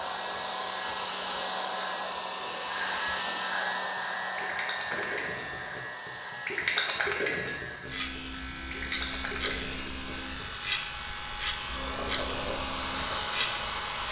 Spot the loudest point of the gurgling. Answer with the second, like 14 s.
7 s.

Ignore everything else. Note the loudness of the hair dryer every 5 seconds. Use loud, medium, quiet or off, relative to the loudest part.
loud, medium, loud.